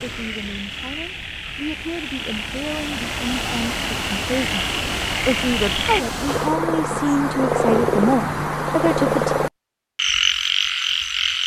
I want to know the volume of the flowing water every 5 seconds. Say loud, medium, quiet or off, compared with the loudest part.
loud, loud, off.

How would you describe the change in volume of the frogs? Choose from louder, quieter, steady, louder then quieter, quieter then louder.
louder.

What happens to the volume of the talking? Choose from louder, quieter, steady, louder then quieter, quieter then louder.
louder.